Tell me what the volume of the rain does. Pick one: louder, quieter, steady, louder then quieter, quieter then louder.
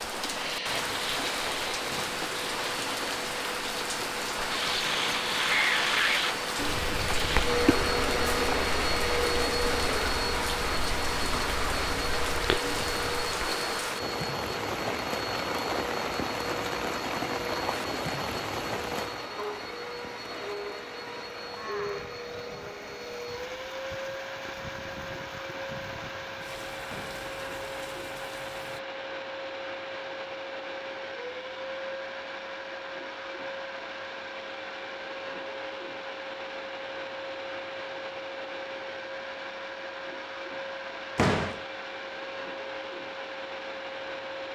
quieter.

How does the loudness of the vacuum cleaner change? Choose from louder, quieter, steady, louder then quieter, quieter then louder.
quieter.